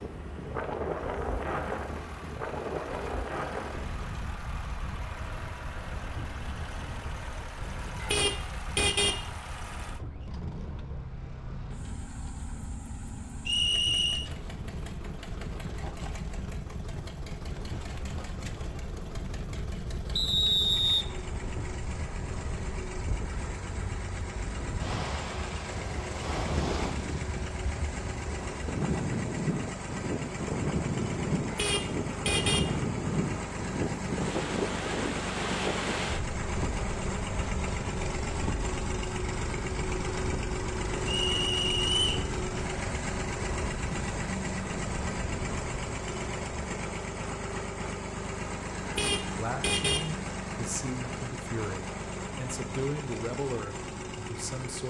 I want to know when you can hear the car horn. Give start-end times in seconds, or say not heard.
8.0-9.2, 31.4-32.7, 48.9-50.0.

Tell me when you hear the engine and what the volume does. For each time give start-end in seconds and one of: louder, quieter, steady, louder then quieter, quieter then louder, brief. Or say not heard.
0.0-54.8 louder.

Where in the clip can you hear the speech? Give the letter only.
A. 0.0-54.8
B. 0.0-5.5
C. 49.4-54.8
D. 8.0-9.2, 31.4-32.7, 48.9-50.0
C.